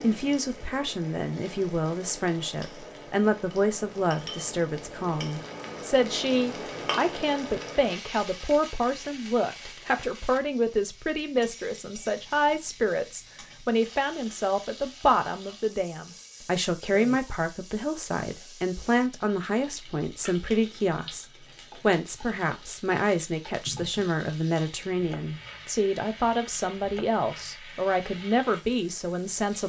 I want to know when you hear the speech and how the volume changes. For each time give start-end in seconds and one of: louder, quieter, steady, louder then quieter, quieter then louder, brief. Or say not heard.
0.0-29.6 steady.